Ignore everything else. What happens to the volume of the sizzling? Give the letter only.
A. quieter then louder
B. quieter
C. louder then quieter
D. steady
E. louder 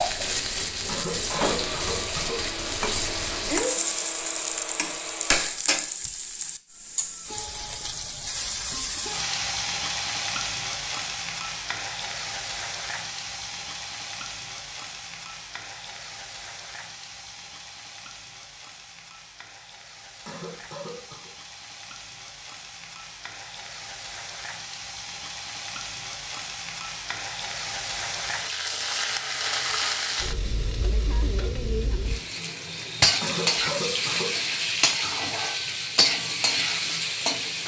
A.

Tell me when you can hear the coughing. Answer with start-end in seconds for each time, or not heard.
0.8-2.5, 20.2-21.3, 33.2-34.4.